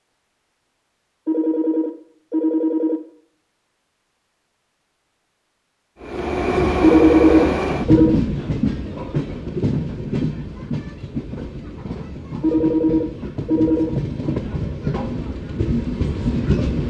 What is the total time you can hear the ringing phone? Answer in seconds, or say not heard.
5 s.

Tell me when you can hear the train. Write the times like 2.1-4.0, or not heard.
6.0-16.8.